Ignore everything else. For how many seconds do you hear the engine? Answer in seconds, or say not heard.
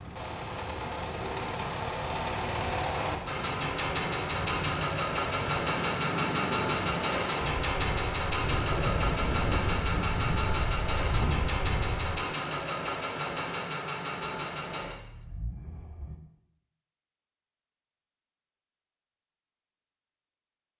16 s.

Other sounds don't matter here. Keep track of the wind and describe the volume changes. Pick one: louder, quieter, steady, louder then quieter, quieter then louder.
louder.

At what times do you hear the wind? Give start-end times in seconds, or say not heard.
0.0-12.2.